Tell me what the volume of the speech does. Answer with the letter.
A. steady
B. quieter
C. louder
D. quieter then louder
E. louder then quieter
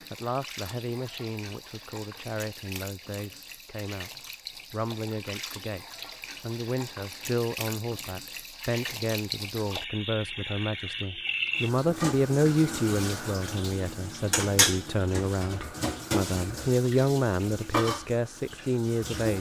C.